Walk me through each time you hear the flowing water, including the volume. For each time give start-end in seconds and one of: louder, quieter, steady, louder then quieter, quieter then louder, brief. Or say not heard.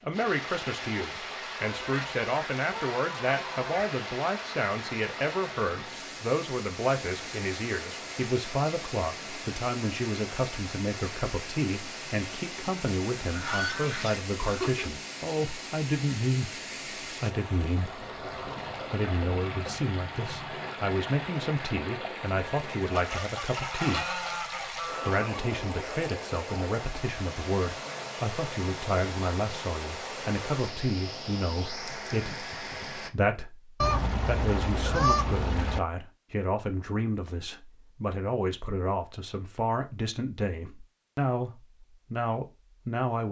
0.0-33.1 steady.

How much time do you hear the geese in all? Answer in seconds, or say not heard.
8 s.